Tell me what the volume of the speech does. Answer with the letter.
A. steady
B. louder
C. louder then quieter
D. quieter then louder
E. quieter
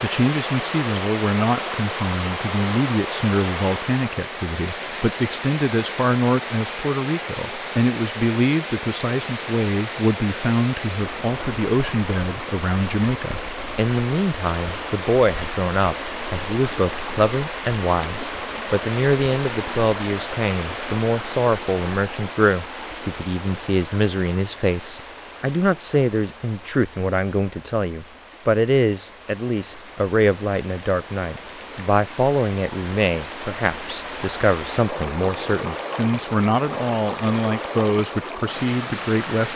A.